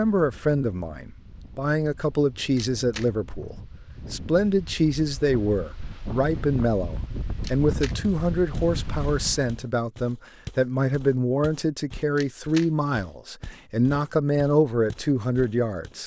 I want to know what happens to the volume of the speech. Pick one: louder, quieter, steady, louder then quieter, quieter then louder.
steady.